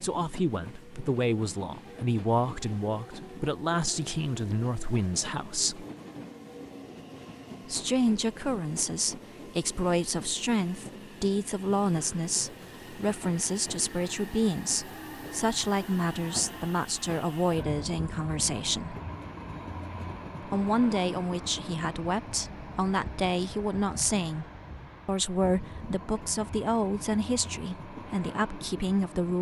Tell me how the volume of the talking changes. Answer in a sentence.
The volume of the talking stays about the same.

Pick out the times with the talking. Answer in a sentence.
You can hear the talking from 0.0 to 5.8 s, from 7.7 to 18.9 s, from 20.4 to 24.4 s and from 25.1 to 29.3 s.